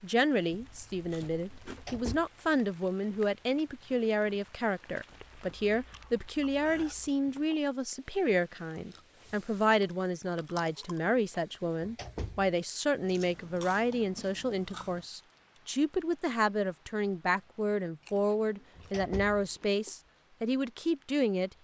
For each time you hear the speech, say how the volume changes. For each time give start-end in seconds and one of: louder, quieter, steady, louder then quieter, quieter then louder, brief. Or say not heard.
0.0-21.5 steady.